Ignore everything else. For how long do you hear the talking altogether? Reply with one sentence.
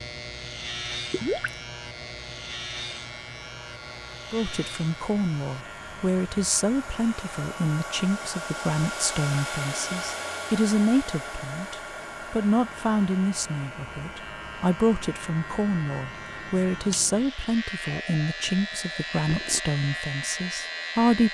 The talking can be heard for 17 seconds in total.